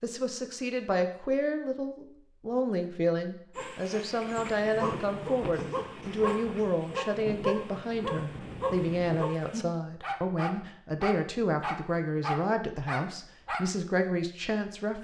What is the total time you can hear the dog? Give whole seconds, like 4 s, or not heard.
10 s.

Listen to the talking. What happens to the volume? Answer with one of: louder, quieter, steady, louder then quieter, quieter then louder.
steady.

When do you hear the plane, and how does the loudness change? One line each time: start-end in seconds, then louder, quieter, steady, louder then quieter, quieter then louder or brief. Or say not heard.
not heard.